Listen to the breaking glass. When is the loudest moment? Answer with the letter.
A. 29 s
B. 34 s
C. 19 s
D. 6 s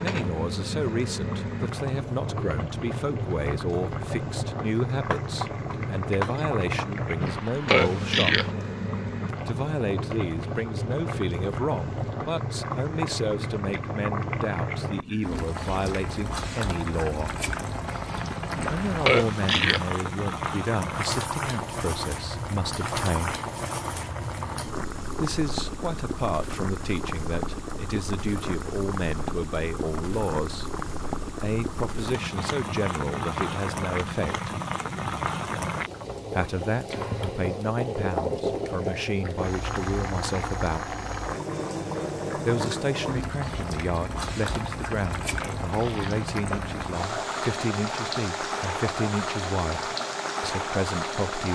D.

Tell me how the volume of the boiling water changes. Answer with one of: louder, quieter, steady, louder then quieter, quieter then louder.
steady.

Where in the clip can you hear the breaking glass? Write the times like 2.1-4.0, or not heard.
5.1-7.5.